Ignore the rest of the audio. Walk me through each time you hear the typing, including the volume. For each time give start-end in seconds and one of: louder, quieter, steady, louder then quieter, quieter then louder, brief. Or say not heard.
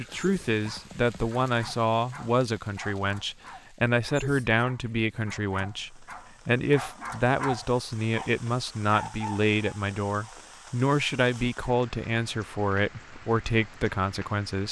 not heard.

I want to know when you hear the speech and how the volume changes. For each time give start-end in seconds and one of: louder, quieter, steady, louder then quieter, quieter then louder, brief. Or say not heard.
0.0-14.6 steady.